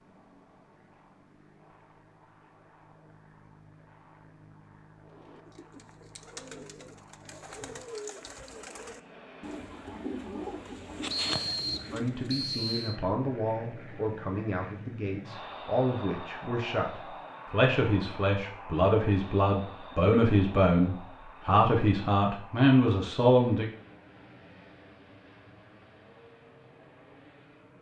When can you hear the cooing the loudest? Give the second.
11 s.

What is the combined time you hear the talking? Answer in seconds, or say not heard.
12 s.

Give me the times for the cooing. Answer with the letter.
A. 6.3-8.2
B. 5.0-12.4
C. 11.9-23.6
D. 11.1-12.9
B.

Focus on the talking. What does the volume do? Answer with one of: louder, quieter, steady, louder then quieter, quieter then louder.
louder.